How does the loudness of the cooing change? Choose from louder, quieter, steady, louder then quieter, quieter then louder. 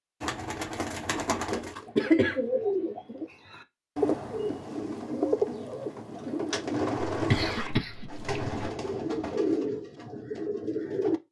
steady.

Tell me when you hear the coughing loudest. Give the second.
2 s.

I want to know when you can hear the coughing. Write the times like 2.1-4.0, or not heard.
1.5-2.4, 7.2-8.7.